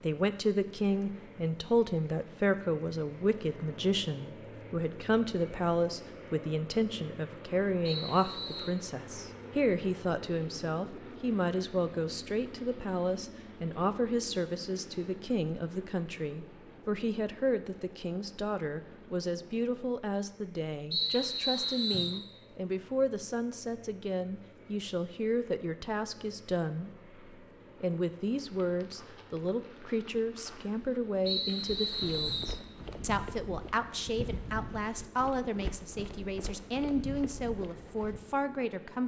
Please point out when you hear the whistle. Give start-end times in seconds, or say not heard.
7.8-8.7, 20.9-22.2, 31.2-32.5.